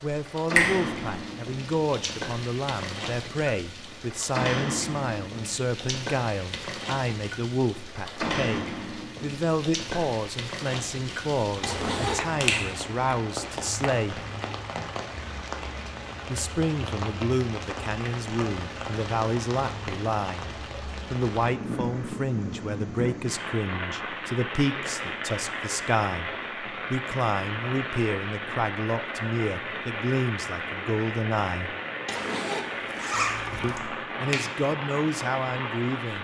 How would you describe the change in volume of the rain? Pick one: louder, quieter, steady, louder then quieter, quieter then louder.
steady.